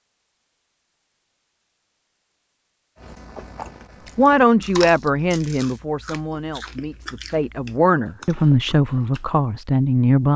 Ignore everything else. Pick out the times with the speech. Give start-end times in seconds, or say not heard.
4.2-10.3.